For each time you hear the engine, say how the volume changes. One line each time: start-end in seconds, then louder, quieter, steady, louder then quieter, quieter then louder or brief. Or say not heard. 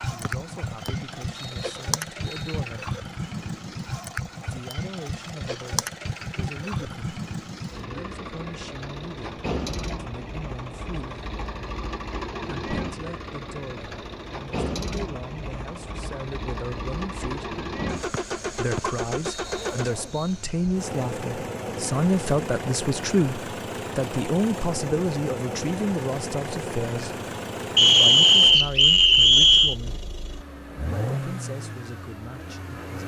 0.0-33.0 steady.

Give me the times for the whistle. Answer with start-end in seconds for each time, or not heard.
0.2-2.5, 18.1-20.3, 27.8-29.8.